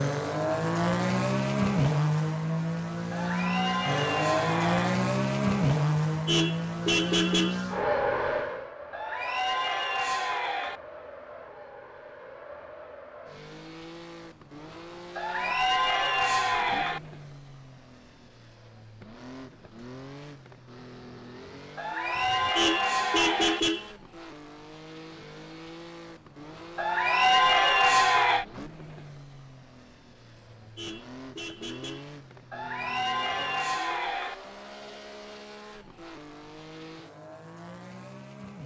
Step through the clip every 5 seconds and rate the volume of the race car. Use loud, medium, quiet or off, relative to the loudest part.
loud, loud, quiet, quiet, quiet, quiet, quiet, quiet.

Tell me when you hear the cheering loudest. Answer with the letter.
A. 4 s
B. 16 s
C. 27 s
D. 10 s
C.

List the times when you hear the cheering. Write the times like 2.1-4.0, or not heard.
3.1-5.0, 8.9-10.8, 15.2-17.0, 21.8-23.6, 26.8-28.4, 32.5-34.4.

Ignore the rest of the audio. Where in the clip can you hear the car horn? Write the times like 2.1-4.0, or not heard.
6.1-7.7, 22.1-23.9, 30.6-32.1.